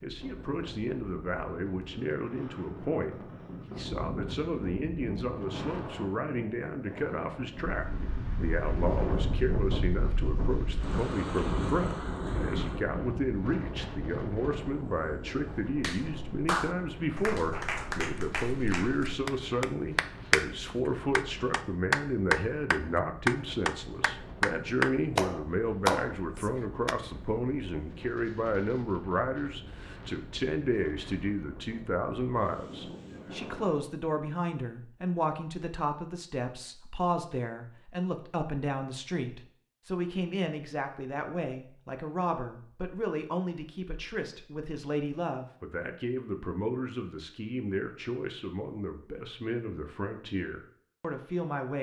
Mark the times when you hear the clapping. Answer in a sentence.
The clapping can be heard from 15.7 to 26.9 s.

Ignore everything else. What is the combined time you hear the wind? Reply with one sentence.
You can hear the wind for 34 seconds altogether.